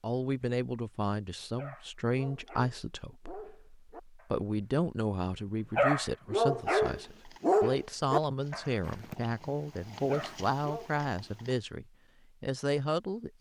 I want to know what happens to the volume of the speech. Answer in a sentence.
The loudness of the speech stays about the same.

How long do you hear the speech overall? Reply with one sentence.
You can hear the speech for 13 seconds altogether.